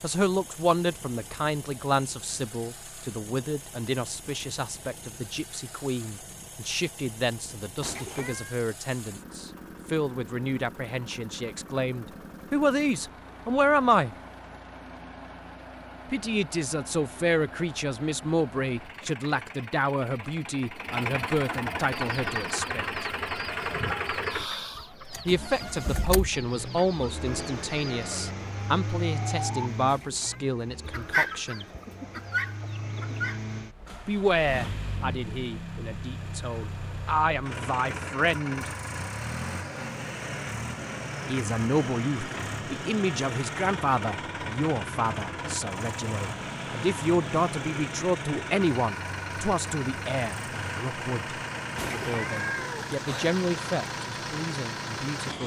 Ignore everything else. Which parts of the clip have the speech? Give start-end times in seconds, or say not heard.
0.0-14.2, 16.1-23.1, 25.2-31.6, 34.0-38.7, 41.2-55.4.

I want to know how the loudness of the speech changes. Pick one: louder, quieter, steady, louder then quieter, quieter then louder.
steady.